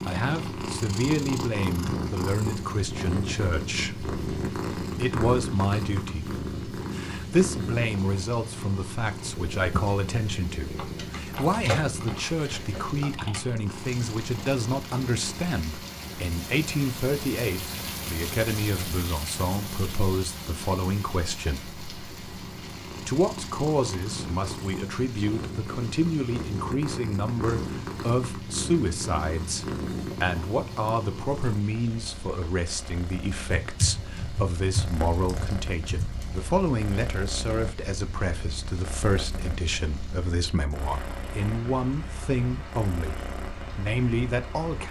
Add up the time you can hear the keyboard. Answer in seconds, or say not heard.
6 s.